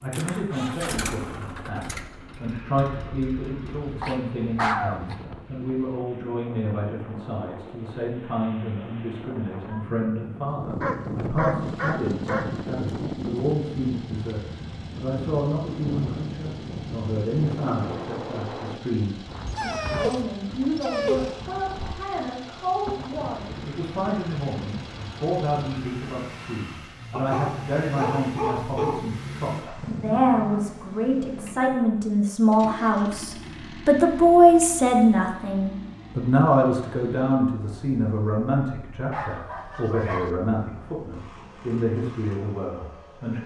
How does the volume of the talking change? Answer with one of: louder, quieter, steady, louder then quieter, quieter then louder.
louder.